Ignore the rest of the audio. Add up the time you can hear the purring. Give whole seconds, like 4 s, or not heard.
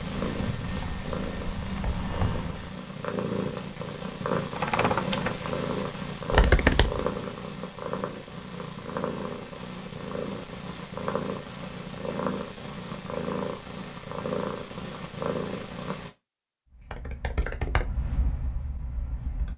16 s.